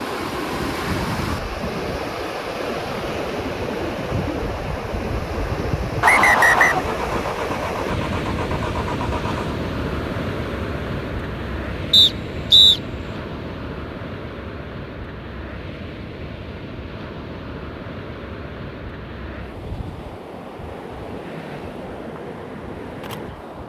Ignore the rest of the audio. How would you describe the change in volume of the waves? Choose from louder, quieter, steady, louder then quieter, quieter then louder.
quieter.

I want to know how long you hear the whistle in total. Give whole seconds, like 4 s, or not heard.
2 s.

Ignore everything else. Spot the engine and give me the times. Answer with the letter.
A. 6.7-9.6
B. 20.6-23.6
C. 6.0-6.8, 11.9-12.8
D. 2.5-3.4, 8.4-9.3
A.